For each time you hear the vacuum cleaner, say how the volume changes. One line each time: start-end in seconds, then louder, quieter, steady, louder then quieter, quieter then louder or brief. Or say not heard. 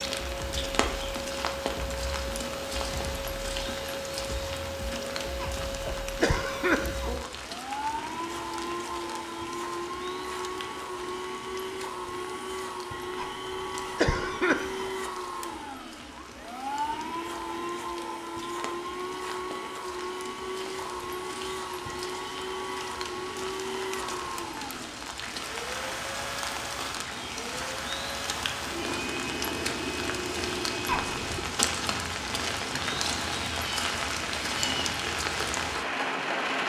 0.0-31.4 steady.